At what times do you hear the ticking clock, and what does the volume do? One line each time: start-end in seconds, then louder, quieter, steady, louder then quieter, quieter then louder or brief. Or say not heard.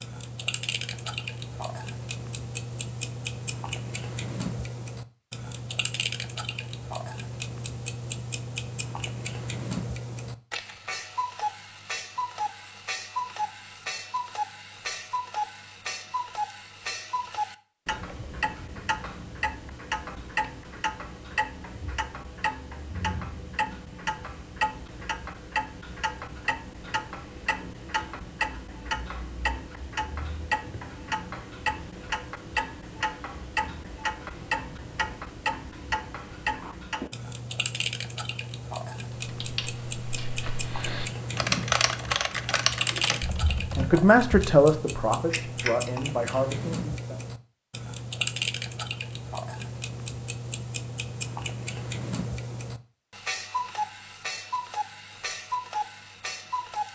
0.0-56.9 steady.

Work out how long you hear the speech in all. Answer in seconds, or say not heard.
4 s.